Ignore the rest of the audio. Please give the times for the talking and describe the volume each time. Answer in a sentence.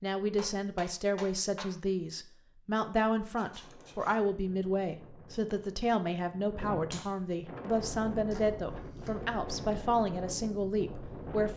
The talking can be heard from 0.0 to 11.5 s, at a steady volume.